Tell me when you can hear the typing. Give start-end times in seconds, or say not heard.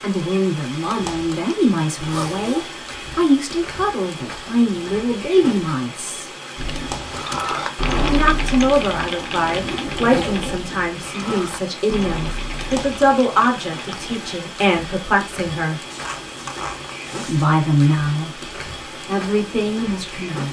6.5-14.2.